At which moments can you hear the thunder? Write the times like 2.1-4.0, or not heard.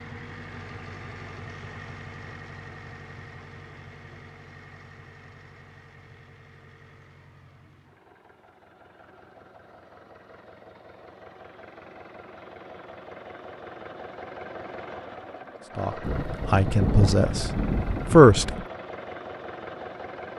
16.0-18.6.